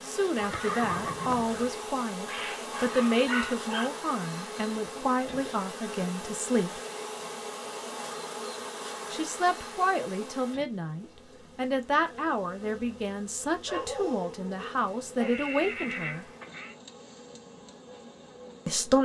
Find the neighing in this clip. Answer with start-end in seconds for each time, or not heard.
0.3-1.8, 15.2-16.8.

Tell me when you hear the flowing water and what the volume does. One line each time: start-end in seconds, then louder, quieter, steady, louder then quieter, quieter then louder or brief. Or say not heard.
not heard.